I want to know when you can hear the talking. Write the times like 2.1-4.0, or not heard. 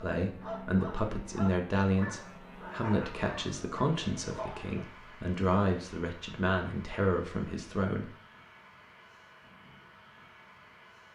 0.0-8.1.